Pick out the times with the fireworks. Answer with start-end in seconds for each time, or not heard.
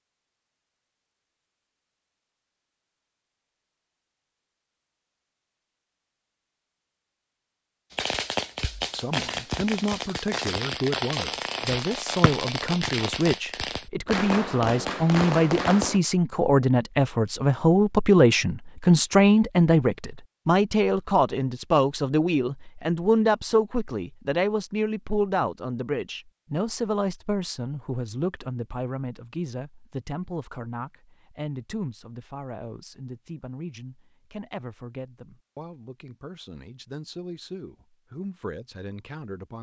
7.9-16.0.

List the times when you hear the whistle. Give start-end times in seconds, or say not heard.
12.2-12.9.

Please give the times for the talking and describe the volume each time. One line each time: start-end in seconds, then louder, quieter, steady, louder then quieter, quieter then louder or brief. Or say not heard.
8.9-39.5 louder then quieter.